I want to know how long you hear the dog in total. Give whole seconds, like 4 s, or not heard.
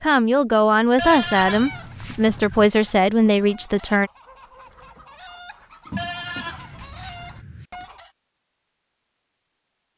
not heard.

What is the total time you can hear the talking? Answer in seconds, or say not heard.
4 s.